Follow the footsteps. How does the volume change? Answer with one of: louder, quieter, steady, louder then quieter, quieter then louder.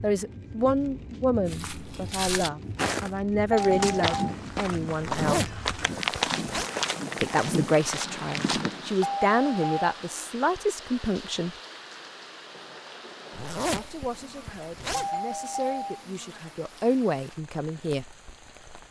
steady.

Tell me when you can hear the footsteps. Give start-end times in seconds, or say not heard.
1.4-9.1.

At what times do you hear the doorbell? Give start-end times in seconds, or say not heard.
3.5-4.3, 9.0-9.9, 14.9-16.1.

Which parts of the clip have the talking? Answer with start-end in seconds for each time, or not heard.
0.0-5.5, 7.2-11.5, 13.7-18.1.